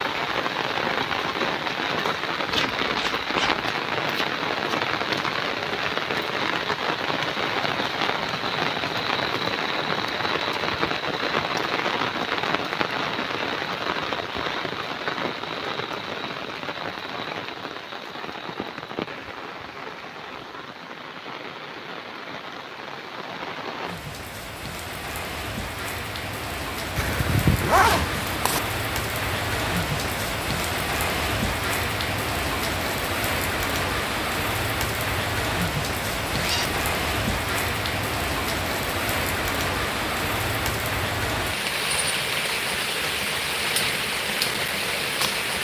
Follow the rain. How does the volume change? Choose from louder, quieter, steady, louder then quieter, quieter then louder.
quieter then louder.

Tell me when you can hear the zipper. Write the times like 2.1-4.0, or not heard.
2.5-3.6, 26.9-28.6, 36.3-36.9.